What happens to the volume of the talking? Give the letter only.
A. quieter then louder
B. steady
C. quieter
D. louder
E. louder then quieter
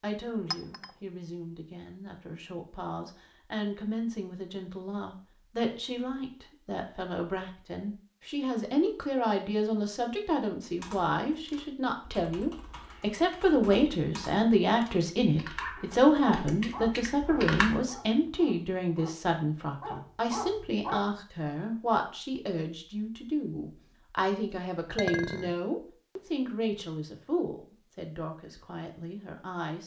E.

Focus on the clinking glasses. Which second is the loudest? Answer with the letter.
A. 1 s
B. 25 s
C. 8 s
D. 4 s
B.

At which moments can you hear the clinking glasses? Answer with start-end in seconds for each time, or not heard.
0.5-0.9, 24.9-25.6.